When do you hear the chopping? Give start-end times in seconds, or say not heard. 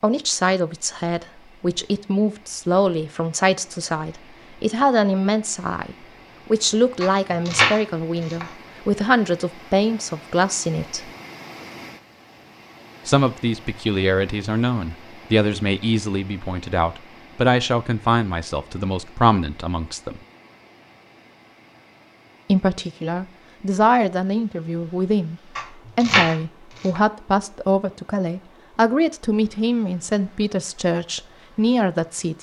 7.0-8.4, 25.6-27.0.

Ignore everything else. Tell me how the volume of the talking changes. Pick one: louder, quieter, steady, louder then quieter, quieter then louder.
steady.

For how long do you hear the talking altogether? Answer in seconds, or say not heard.
28 s.